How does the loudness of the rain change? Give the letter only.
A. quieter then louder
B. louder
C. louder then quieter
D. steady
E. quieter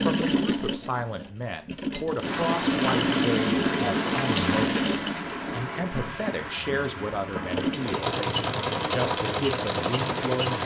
E.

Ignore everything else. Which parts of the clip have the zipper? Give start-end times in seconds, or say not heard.
not heard.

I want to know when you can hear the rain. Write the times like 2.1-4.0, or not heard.
2.2-10.6.